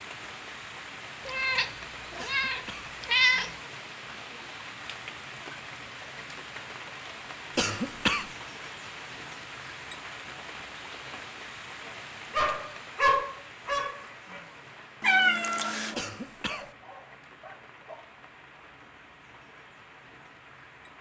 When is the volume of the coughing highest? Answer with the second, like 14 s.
8 s.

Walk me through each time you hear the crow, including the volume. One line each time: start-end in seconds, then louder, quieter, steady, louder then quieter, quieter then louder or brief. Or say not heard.
not heard.